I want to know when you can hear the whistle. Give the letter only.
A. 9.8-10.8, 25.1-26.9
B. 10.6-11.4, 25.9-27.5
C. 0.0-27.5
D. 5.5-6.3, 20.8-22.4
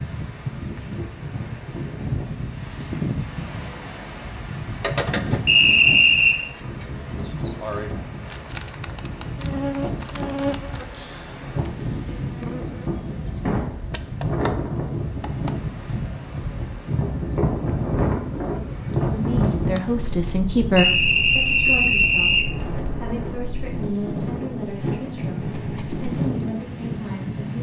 D.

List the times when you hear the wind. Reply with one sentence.
The wind can be heard from 0.0 to 27.5 s.